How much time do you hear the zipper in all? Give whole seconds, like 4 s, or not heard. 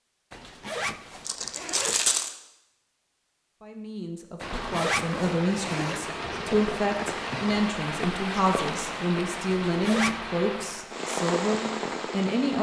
4 s.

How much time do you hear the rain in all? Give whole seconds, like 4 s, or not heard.
8 s.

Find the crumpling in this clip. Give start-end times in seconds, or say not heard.
1.2-2.4.